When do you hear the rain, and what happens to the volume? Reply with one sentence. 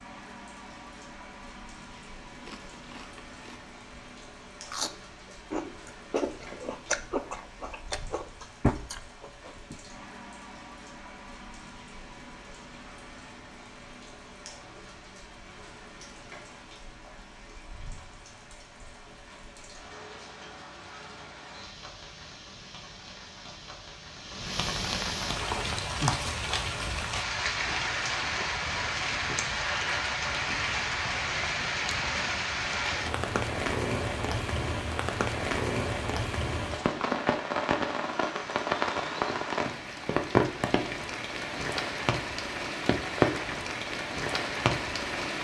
The rain can be heard from 0.0 to 45.3 s, getting louder.